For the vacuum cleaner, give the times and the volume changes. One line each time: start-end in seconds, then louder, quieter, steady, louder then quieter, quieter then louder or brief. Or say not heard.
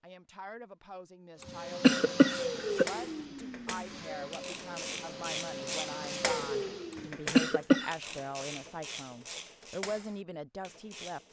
1.4-7.2 quieter then louder.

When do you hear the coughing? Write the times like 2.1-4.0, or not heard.
1.4-2.9, 6.9-7.9.